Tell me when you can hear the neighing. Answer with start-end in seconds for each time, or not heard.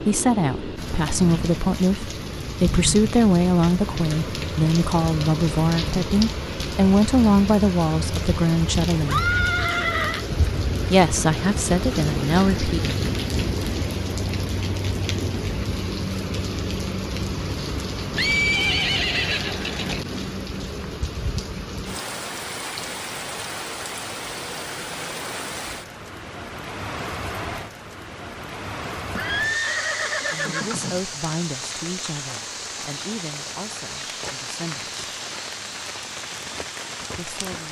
9.0-10.2, 18.1-20.1, 29.1-31.0.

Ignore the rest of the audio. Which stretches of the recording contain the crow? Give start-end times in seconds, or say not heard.
not heard.